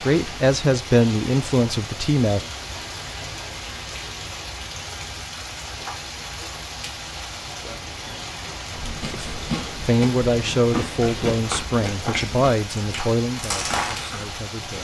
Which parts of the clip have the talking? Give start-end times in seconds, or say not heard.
0.0-2.5, 9.1-14.7.